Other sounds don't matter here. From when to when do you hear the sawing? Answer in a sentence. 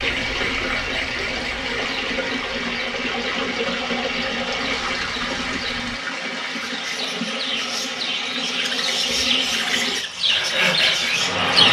You can hear the sawing from 10.2 to 11.3 s.